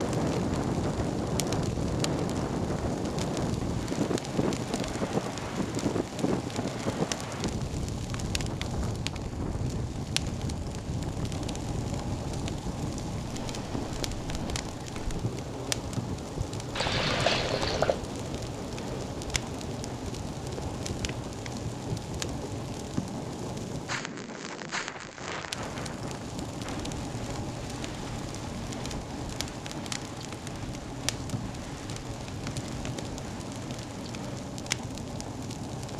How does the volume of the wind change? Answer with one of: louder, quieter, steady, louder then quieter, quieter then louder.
quieter.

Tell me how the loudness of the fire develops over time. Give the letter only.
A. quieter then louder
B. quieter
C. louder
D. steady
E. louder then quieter
D.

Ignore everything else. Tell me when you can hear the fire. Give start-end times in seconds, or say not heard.
0.0-35.9.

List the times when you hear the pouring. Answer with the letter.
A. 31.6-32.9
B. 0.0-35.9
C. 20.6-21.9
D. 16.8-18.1
D.